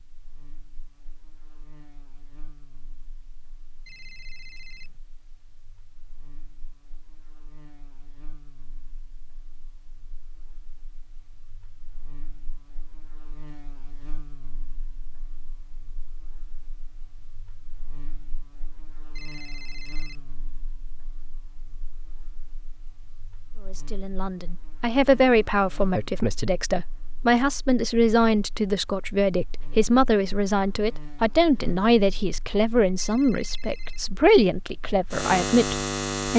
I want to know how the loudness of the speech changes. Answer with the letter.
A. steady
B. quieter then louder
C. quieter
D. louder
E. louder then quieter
A.